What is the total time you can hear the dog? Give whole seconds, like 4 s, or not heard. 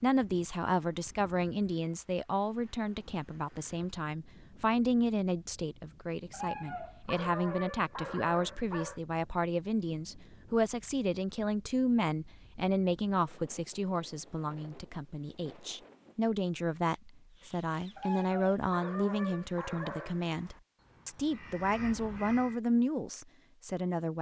5 s.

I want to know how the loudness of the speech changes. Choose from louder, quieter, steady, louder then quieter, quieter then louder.
steady.